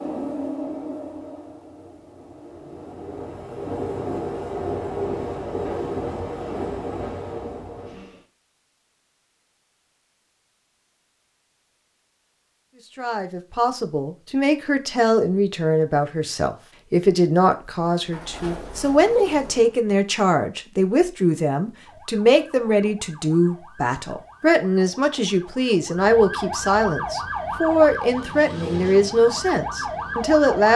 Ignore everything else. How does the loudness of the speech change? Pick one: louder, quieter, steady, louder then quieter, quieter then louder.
steady.